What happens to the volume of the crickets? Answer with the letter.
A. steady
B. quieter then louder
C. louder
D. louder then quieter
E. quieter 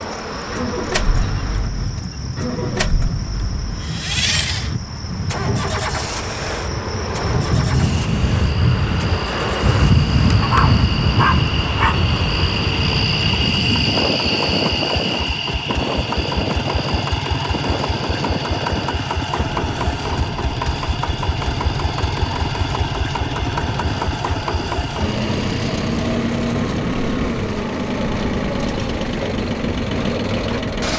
D.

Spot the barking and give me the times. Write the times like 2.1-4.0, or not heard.
10.4-12.0.